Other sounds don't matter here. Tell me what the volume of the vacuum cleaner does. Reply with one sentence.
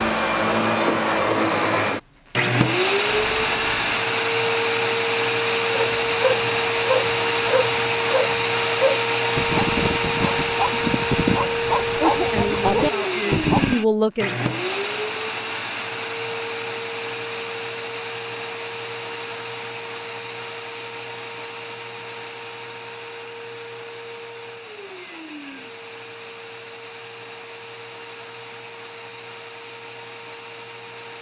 The loudness of the vacuum cleaner goes down.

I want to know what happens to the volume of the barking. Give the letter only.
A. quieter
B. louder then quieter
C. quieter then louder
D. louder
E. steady
E.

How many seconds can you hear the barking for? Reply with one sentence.
You can hear the barking for 8 seconds altogether.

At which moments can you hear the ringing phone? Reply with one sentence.
The ringing phone can be heard from 3.0 to 4.0 s.